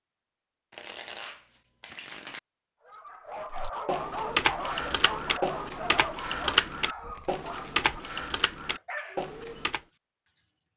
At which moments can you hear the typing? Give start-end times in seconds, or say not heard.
3.5-9.8.